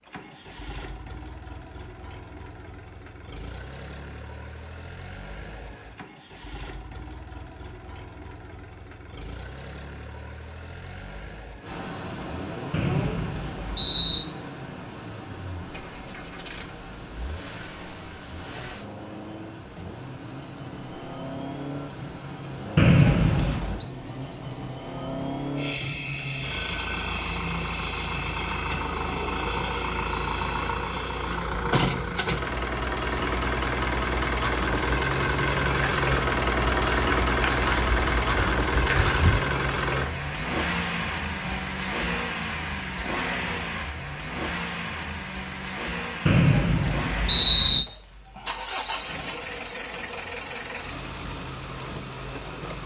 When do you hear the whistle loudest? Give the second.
47 s.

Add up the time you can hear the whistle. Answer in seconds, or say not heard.
4 s.